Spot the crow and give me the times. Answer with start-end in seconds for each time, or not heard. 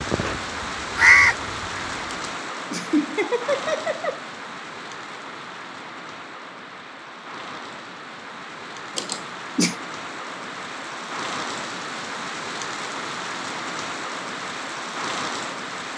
0.0-1.9.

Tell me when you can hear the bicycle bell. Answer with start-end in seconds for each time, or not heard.
not heard.